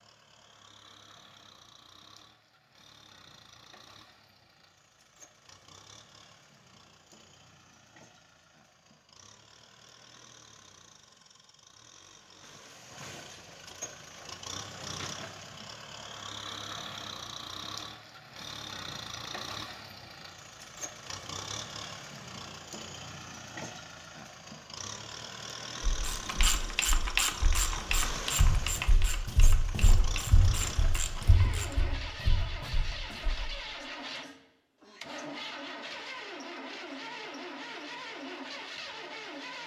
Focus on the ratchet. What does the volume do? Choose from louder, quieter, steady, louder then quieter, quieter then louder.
quieter.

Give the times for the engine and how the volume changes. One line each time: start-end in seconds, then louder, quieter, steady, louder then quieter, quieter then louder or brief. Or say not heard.
0.0-39.6 louder.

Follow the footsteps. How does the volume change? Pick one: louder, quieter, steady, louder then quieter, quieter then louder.
louder then quieter.